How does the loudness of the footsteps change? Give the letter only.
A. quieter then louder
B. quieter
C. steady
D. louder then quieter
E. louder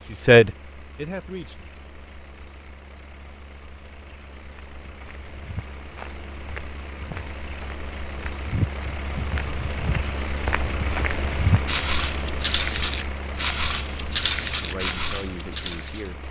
E.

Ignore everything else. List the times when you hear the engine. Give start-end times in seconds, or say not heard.
0.0-16.2.